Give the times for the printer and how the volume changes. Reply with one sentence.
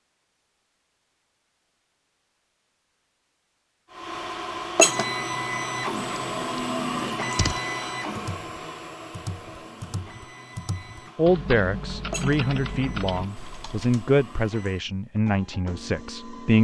You can hear the printer from 3.9 to 16.5 s, getting quieter.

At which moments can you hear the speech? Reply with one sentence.
You can hear the speech from 11.2 to 16.5 s.